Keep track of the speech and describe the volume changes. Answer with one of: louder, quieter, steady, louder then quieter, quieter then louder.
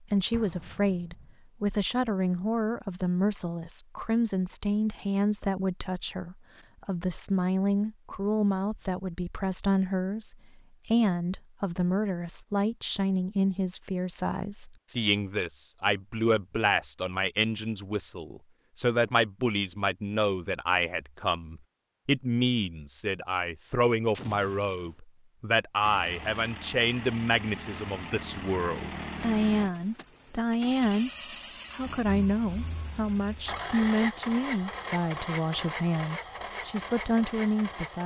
steady.